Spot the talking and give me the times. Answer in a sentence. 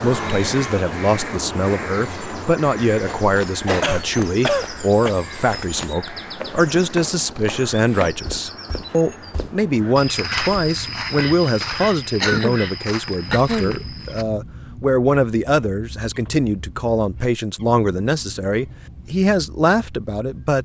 The talking can be heard from 0.0 to 20.5 s.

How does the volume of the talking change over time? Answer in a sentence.
The volume of the talking stays about the same.